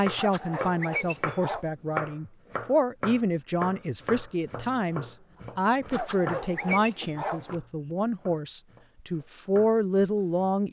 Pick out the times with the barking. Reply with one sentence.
The barking can be heard from 0.1 to 1.6 s and from 5.8 to 7.5 s.